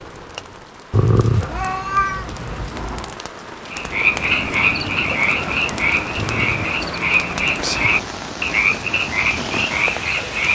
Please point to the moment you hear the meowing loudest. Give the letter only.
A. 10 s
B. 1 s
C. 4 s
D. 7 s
B.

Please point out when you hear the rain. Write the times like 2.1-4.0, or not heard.
0.0-10.4.